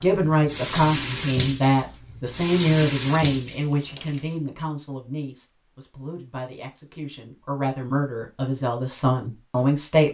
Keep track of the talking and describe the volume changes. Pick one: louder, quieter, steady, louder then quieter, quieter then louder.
quieter then louder.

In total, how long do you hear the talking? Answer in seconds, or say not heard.
10 s.